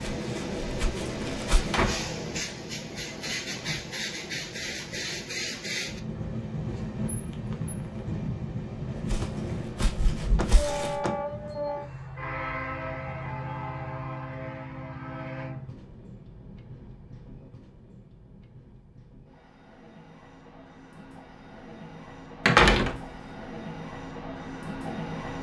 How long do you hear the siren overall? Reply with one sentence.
The siren can't be heard in this clip.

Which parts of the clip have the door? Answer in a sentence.
You can hear the door from 1.5 to 2.1 s, from 9.2 to 11.3 s and from 22.4 to 23.0 s.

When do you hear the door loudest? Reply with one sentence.
The volume of the door peaks at 23 seconds.